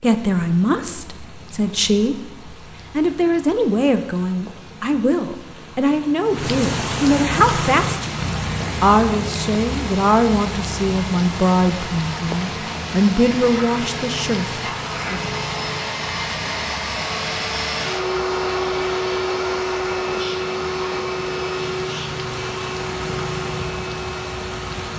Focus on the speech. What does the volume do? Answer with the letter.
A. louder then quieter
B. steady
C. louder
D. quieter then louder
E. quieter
B.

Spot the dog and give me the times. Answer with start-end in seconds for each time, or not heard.
not heard.